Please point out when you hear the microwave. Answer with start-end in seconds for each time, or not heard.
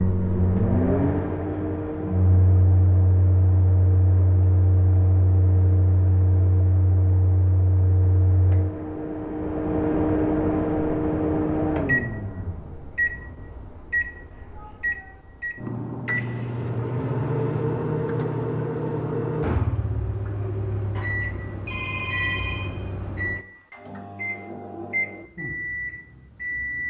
0.0-26.8.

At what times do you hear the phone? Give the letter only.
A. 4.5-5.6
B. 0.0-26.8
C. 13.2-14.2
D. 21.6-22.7
D.